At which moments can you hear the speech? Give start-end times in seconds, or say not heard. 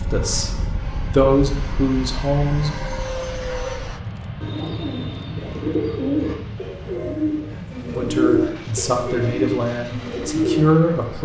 0.1-2.8, 8.0-11.2.